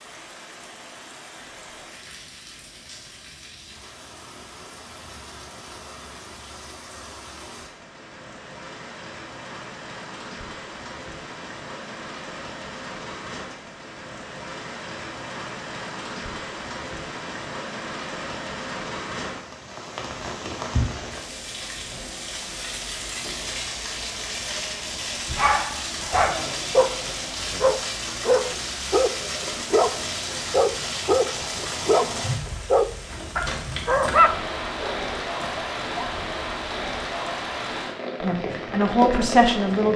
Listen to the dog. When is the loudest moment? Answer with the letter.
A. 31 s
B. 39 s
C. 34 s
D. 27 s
C.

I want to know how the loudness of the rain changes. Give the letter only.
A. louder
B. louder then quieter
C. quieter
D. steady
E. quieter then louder
A.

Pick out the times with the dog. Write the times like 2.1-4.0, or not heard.
25.4-29.9, 30.5-36.1.